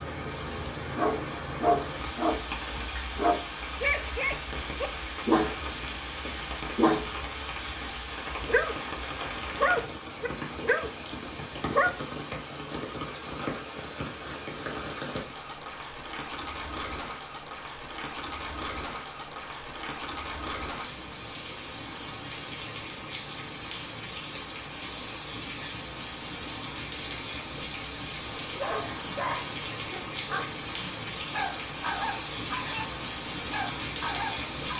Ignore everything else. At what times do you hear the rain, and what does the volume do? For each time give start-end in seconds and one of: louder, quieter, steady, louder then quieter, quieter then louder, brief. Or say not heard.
0.0-34.7 steady.